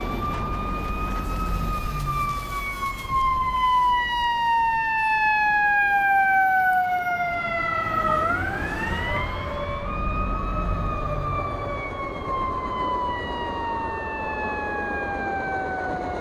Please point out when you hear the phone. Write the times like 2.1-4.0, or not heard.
not heard.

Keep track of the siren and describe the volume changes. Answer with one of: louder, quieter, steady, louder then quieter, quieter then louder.
louder then quieter.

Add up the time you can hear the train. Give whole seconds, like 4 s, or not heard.
16 s.